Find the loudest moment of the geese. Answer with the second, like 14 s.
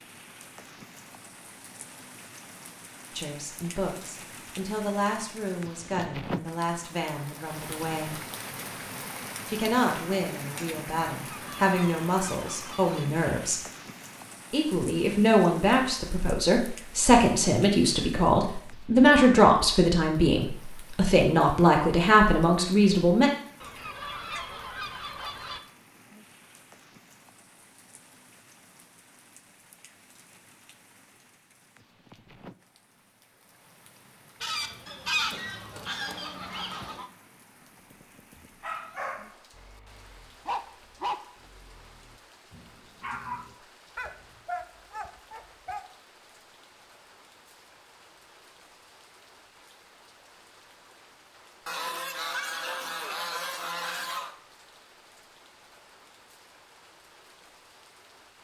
35 s.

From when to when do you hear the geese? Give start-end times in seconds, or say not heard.
11.2-13.1, 23.6-25.6, 34.4-37.1, 51.6-54.4.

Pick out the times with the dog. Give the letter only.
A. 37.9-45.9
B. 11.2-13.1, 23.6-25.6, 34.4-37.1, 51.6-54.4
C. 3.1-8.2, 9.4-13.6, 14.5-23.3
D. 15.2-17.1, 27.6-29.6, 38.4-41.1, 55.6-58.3
A.